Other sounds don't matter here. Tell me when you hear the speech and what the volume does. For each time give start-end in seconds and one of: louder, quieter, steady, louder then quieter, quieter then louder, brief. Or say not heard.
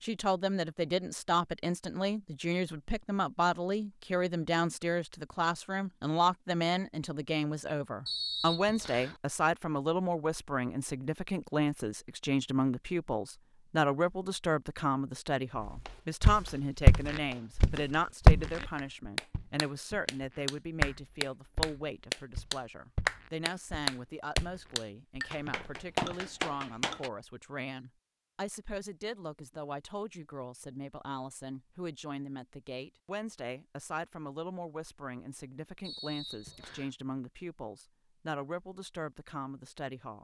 0.0-40.1 quieter.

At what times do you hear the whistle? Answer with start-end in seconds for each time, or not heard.
8.1-9.2, 35.8-36.9.